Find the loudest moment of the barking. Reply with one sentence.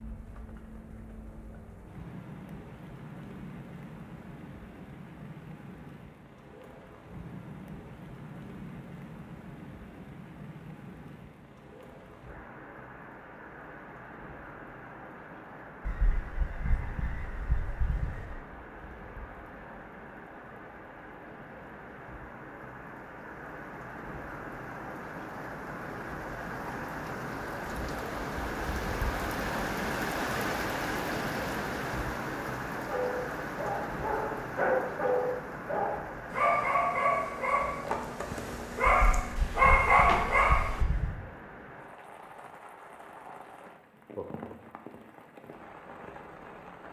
The loudest moment of the barking is at 40 seconds.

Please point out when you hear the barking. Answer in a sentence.
The barking can be heard from 32.7 to 40.8 s.